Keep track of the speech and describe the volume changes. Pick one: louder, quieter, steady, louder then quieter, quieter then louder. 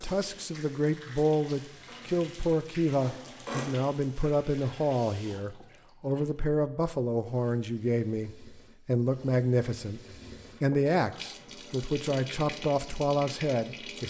steady.